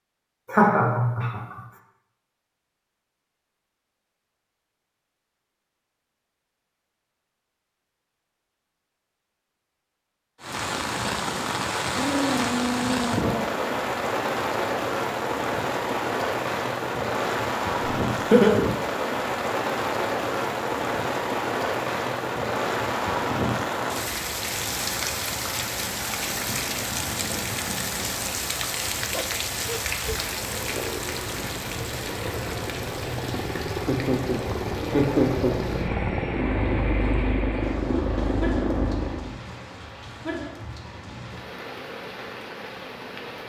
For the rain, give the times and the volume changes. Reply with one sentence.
The rain can be heard from 10.4 to 43.4 s, getting quieter.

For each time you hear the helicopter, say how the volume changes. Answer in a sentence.
The helicopter can be heard from 30.3 to 39.4 s, getting louder.